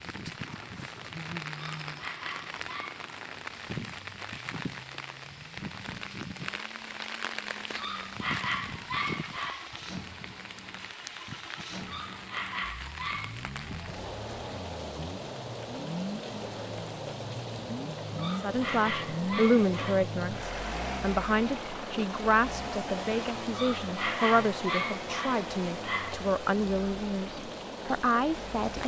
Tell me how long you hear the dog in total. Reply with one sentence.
You can hear the dog for 10 seconds altogether.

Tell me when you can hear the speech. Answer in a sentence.
The speech can be heard from 18.4 to 28.8 s.